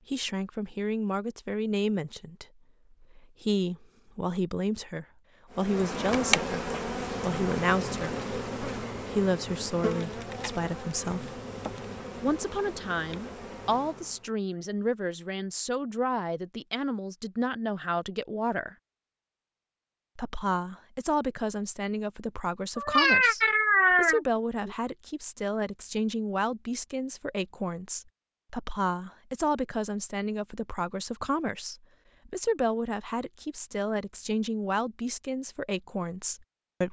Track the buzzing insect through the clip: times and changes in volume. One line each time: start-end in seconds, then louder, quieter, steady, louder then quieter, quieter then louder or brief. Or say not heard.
5.5-14.3 quieter.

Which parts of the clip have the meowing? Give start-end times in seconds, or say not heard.
22.8-24.8.